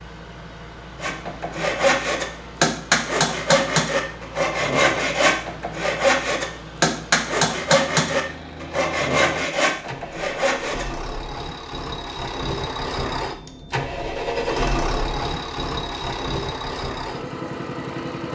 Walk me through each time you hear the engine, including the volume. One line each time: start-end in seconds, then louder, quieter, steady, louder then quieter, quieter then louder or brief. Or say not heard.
0.0-18.3 louder.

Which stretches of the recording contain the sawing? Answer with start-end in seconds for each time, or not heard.
1.0-10.9.